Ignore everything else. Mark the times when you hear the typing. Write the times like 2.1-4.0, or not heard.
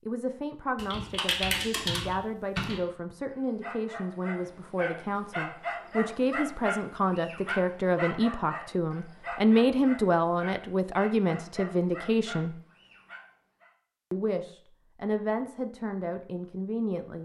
0.8-2.8.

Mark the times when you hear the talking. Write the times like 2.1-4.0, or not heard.
0.1-12.6, 14.1-17.2.